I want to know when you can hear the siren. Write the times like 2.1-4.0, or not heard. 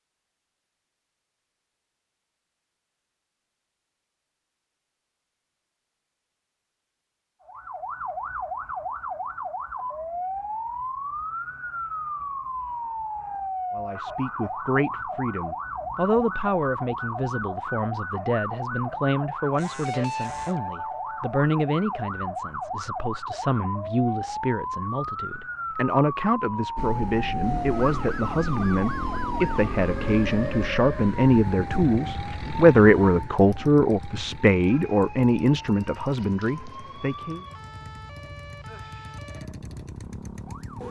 7.4-40.8.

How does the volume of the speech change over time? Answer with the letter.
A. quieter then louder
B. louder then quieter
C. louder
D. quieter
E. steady
C.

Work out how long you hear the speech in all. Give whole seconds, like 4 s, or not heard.
24 s.